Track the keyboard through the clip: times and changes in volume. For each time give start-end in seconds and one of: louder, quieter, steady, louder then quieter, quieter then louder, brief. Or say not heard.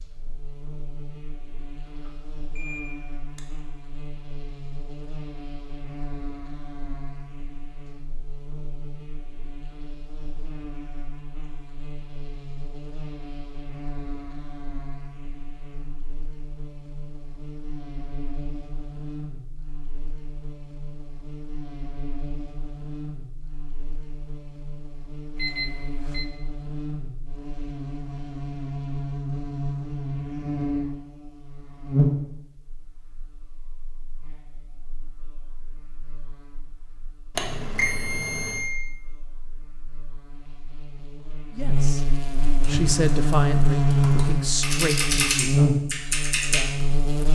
42.6-47.1 louder.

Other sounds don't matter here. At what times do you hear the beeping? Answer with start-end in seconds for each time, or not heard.
2.0-3.4, 25.4-26.2, 37.4-38.6.